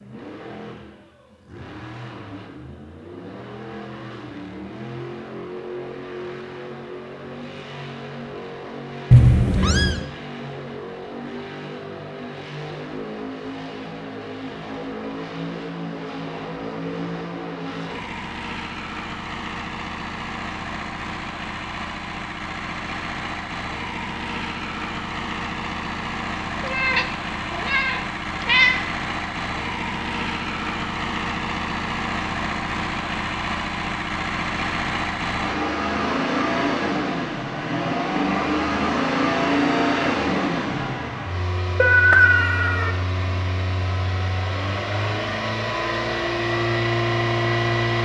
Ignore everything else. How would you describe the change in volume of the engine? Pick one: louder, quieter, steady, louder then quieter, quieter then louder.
louder.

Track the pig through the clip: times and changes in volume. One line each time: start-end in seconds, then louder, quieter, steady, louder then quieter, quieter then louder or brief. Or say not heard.
not heard.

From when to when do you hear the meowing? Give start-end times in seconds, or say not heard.
9.1-10.1, 26.6-28.8, 41.8-43.0.